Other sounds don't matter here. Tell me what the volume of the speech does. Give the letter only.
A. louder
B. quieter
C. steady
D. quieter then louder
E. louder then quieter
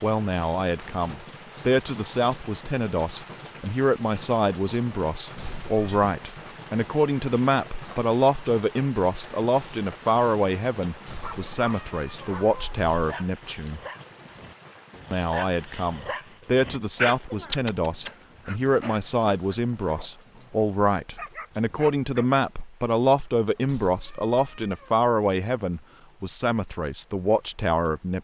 C.